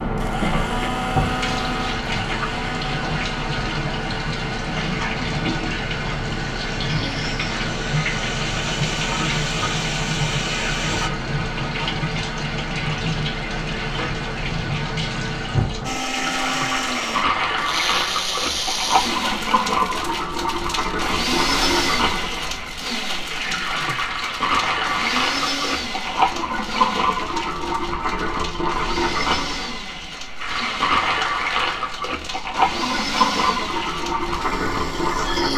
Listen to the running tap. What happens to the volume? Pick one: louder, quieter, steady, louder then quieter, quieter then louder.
steady.